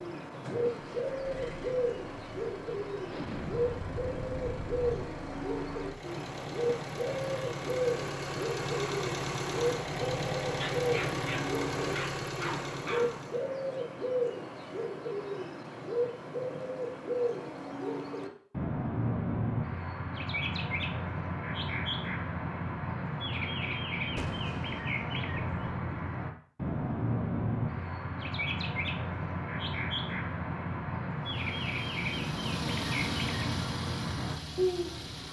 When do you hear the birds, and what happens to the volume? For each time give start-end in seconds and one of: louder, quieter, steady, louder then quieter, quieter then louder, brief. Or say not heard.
0.0-35.2 steady.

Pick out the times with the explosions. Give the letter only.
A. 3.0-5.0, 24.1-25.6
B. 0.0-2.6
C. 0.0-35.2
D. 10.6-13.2
A.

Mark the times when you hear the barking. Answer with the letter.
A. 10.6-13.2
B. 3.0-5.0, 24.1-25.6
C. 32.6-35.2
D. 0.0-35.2
A.